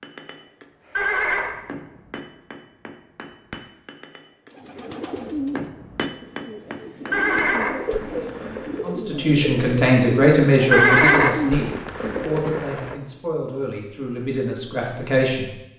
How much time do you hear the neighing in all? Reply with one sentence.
You can hear the neighing for 5 seconds altogether.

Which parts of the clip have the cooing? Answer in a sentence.
You can hear the cooing from 4.5 to 12.4 s.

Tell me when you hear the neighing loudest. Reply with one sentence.
The loudest moment of the neighing is at 11 seconds.